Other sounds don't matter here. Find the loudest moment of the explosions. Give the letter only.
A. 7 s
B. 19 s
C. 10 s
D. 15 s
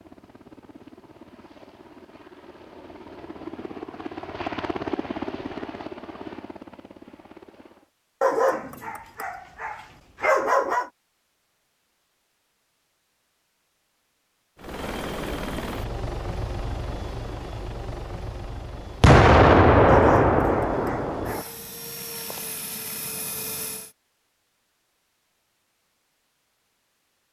B.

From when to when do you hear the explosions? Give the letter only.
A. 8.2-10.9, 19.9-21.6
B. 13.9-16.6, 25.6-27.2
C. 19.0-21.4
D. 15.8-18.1
C.